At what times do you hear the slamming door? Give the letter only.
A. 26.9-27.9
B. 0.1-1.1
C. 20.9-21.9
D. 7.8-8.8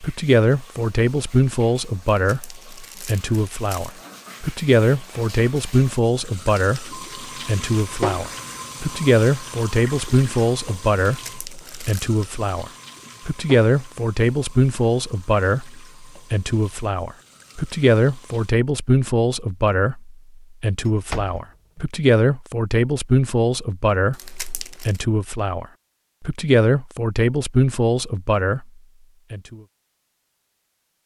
C.